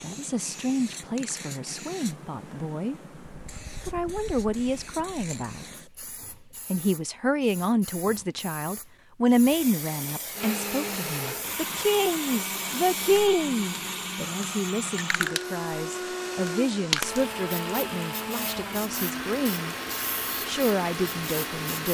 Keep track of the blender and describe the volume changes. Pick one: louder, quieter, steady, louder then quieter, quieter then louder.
steady.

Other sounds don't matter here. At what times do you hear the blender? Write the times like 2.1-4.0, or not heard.
10.3-21.8.